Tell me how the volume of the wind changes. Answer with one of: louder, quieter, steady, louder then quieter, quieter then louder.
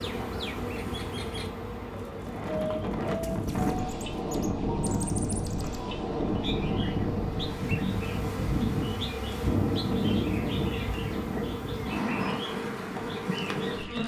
quieter.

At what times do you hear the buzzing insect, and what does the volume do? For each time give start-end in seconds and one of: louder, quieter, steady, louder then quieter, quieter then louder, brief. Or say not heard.
0.0-14.0 quieter then louder.